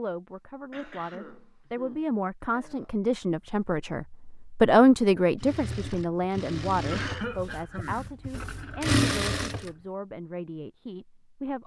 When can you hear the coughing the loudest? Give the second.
7 s.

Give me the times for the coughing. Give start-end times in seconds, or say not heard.
0.7-2.9, 6.8-8.1.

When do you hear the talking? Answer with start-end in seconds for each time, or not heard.
0.0-11.6.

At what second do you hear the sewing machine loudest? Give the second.
9 s.